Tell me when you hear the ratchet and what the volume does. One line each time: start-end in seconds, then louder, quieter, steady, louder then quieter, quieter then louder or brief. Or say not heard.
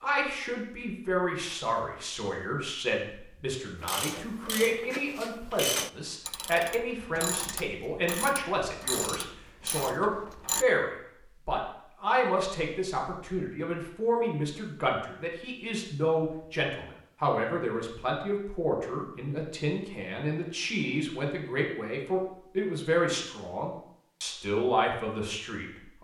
3.8-10.7 louder then quieter.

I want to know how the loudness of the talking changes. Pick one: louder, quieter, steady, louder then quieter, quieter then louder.
steady.